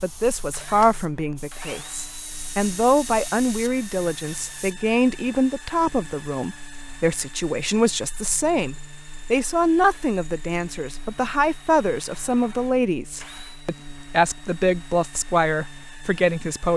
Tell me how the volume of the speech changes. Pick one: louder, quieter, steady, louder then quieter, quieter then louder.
steady.